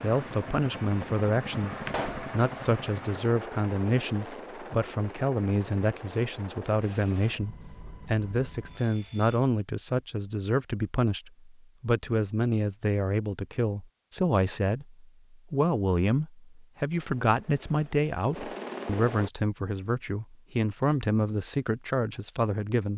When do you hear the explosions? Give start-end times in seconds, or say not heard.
1.9-2.3.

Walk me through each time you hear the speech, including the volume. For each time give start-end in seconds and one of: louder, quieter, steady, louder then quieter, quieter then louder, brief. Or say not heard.
0.0-22.9 steady.